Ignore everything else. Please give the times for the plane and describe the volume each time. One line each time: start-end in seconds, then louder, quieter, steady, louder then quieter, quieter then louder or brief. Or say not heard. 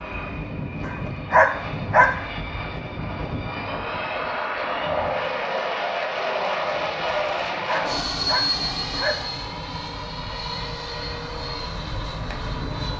0.0-12.9 louder then quieter.